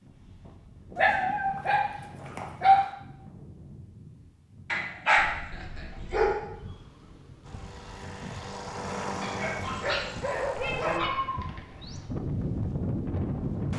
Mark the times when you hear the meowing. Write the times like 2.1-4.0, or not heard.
0.5-2.4, 5.2-6.3, 10.5-12.1.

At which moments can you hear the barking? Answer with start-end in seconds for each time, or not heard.
0.9-3.0, 4.7-6.4, 9.2-11.1.